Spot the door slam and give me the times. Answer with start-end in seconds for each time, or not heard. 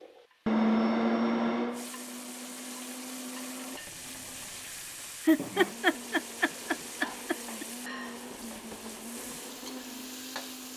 not heard.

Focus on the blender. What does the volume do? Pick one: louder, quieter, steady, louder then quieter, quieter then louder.
quieter.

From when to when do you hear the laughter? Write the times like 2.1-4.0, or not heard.
5.2-7.7.